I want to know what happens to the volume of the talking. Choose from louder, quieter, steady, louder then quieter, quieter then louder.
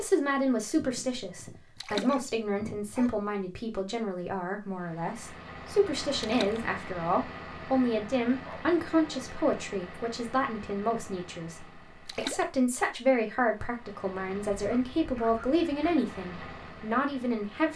steady.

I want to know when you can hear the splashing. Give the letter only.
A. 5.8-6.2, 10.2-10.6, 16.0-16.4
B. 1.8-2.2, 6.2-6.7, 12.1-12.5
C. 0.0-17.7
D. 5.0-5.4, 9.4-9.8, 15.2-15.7
B.